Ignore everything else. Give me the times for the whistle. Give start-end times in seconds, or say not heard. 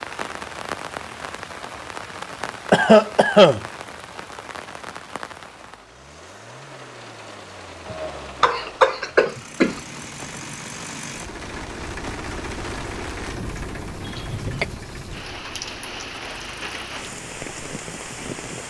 not heard.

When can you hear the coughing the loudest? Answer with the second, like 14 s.
3 s.